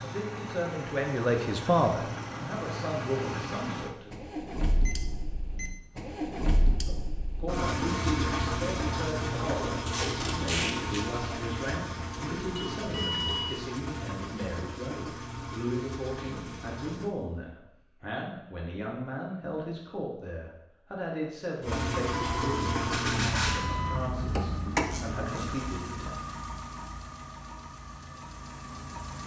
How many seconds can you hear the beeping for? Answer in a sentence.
You can hear the beeping for 4 seconds altogether.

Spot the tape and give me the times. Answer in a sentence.
The tape can be heard from 9.8 to 11.1 s and from 24.9 to 25.4 s.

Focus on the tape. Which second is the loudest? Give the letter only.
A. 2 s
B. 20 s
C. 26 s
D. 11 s
D.